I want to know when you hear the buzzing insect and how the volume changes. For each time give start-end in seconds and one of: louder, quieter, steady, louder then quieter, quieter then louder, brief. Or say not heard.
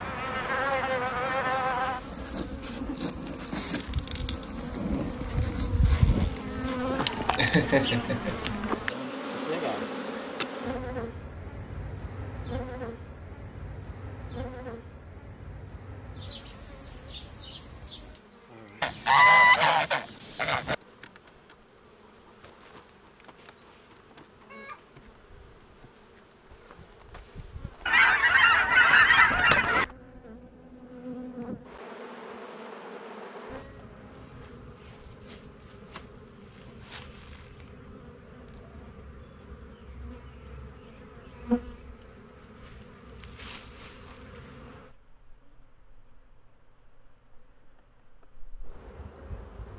0.0-49.7 quieter.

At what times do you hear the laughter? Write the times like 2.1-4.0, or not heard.
6.7-8.6.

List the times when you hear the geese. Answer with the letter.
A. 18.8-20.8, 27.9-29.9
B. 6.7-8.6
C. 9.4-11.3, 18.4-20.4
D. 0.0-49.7
A.